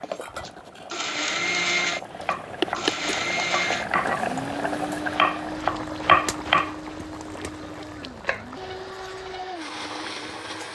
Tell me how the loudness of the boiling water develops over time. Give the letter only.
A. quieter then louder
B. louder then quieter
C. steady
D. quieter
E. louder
B.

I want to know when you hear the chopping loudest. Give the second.
6 s.